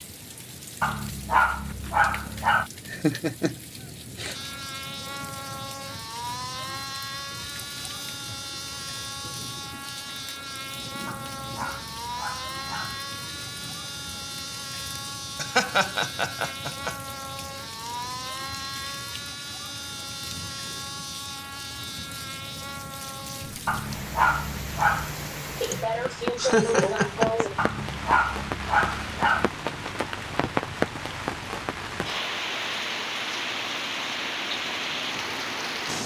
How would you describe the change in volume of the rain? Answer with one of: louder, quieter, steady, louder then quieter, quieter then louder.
louder.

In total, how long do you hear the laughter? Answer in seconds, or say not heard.
5 s.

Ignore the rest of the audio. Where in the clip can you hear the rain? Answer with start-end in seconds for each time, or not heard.
0.0-36.0.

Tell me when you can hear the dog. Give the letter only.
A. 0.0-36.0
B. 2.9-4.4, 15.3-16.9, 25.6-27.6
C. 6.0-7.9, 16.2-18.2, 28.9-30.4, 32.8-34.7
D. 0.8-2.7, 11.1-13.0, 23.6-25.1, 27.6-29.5
D.